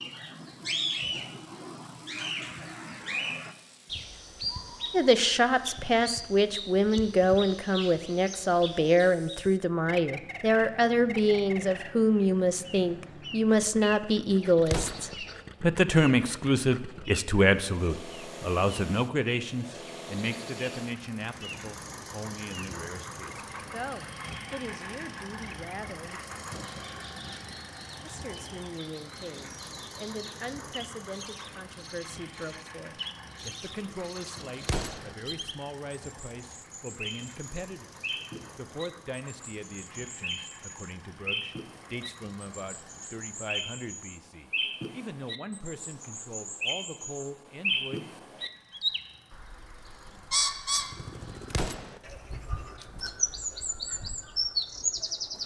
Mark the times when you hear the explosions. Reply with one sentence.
You can hear the explosions from 14.7 to 15.2 s, from 34.6 to 35.1 s and from 51.5 to 52.0 s.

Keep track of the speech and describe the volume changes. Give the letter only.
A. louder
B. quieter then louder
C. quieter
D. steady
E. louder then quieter
C.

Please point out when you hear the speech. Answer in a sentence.
You can hear the speech from 4.9 to 26.2 s and from 28.0 to 48.1 s.